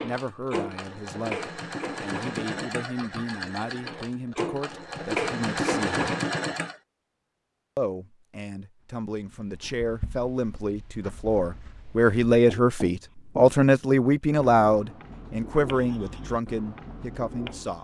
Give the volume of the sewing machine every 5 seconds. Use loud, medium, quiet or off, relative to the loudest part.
medium, loud, off, off.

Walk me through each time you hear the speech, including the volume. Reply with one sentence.
The speech can be heard from 0.0 to 6.0 s, at a steady volume; and from 7.8 to 17.7 s, getting louder then quieter.